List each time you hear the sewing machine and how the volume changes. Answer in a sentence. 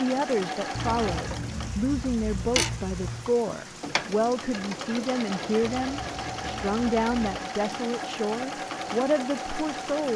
You can hear the sewing machine from 0.0 to 10.1 s, at a steady volume.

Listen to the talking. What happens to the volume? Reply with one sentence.
The loudness of the talking stays about the same.